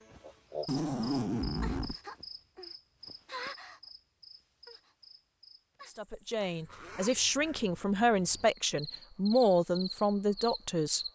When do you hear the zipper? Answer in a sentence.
You can hear the zipper from 0.7 to 1.9 s and from 6.4 to 7.7 s.